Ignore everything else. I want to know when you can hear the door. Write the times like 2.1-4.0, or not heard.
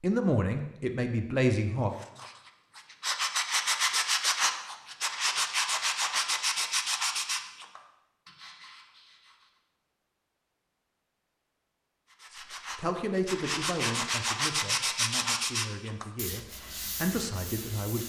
not heard.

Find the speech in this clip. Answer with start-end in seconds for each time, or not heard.
0.0-1.9, 12.3-18.0.